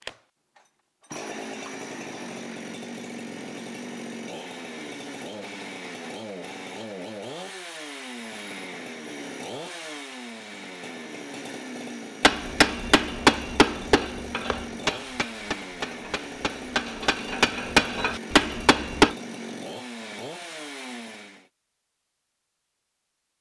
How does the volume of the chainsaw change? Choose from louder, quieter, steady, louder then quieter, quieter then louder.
steady.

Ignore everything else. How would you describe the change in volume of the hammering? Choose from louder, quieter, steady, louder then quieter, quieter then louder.
quieter then louder.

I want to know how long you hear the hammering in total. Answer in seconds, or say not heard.
7 s.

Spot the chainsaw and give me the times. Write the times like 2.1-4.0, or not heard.
0.0-21.5.